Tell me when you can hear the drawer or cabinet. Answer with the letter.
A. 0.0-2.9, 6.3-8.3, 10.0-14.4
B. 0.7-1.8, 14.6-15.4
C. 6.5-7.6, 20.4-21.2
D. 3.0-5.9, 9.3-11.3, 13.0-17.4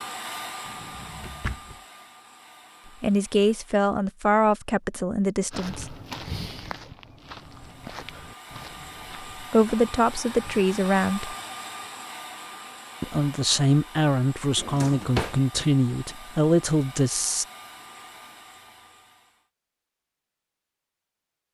B.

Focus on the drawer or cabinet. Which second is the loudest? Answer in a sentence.
The volume of the drawer or cabinet peaks at 15 seconds.